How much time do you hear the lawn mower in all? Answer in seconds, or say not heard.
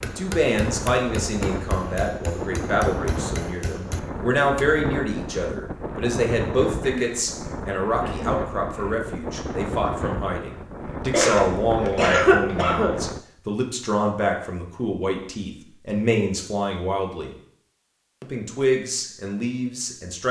not heard.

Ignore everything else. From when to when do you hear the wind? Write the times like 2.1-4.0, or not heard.
0.0-13.2.